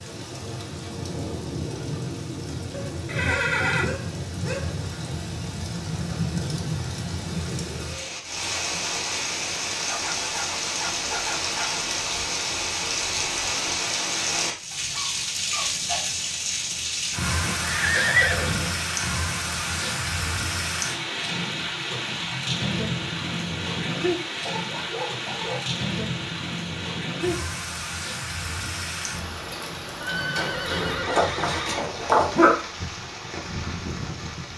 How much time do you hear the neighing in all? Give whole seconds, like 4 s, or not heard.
4 s.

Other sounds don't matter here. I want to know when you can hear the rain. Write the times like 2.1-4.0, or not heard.
0.0-34.5.